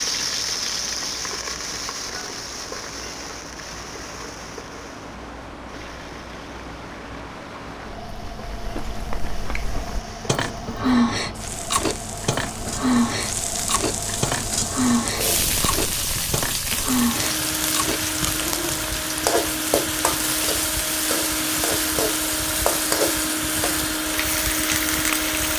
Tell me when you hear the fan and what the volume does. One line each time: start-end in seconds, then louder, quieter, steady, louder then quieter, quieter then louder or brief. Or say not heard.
0.0-25.5 louder.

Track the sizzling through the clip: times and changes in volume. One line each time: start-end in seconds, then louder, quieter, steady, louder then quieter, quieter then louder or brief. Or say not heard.
0.0-25.5 quieter then louder.